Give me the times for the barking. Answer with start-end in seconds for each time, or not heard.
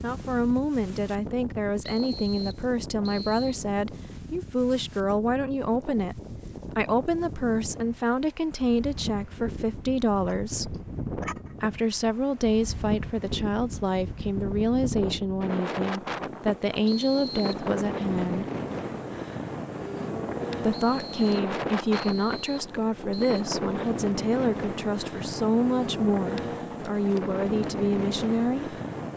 10.2-11.9.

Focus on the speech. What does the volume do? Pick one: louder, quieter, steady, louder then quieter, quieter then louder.
steady.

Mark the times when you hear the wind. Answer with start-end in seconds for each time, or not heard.
0.0-29.1.